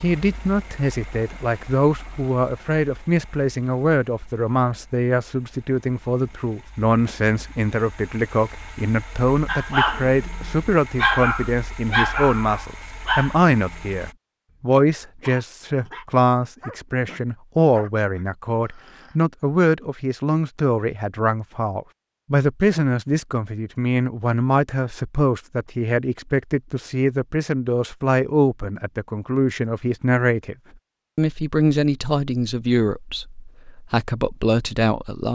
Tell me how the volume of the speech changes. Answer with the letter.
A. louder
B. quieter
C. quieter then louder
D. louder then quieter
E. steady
E.